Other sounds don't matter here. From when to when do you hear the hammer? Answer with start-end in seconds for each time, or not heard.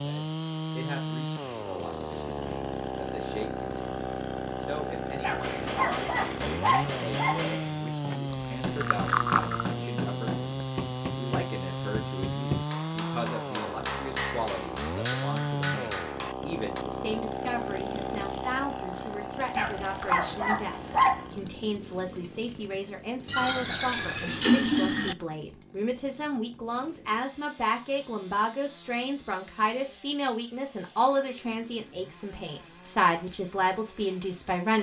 5.4-16.9.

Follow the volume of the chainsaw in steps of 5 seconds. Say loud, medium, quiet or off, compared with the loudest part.
loud, loud, loud, loud, medium, quiet, quiet.